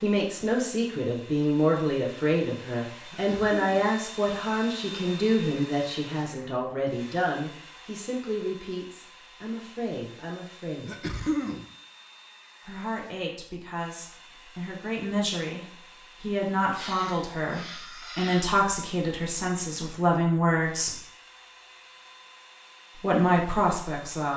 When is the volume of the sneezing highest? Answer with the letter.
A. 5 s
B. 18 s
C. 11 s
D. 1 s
C.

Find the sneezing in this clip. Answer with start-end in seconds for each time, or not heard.
3.1-3.9, 10.8-11.7, 16.8-18.5.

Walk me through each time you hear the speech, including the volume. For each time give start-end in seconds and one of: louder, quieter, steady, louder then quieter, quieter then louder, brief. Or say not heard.
0.0-11.1 quieter
12.7-21.0 louder
22.9-24.3 brief.